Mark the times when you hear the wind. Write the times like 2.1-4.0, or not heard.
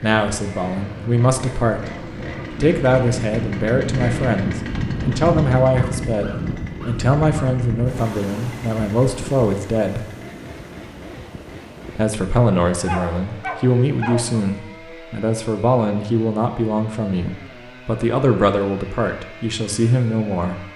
0.1-12.1.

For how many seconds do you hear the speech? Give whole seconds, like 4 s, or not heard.
18 s.